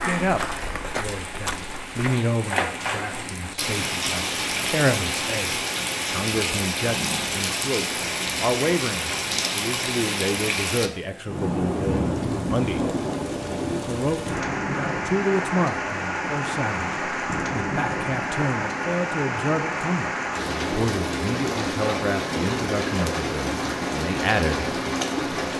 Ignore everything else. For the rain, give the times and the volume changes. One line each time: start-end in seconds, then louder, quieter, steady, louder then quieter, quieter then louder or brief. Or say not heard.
0.0-25.5 steady.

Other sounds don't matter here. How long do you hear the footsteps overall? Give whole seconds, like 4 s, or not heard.
2 s.